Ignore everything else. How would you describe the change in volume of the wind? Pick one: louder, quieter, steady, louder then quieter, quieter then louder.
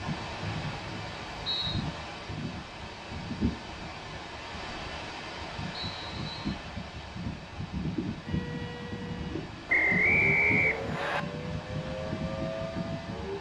steady.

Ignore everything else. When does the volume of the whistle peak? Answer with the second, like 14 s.
10 s.